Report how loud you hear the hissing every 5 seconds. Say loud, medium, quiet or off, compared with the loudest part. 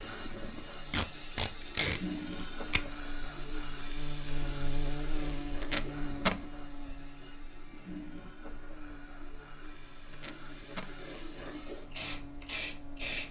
loud, medium, loud.